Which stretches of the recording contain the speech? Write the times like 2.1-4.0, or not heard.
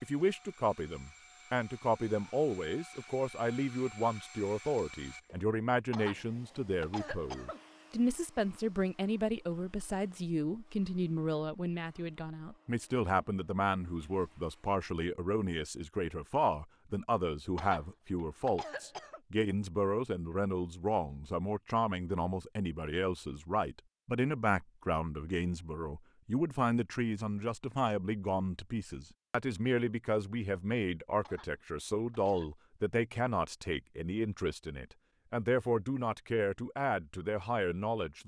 0.0-38.2.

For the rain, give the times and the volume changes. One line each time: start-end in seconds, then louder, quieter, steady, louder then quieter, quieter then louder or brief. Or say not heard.
not heard.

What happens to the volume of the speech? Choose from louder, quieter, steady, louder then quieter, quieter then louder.
steady.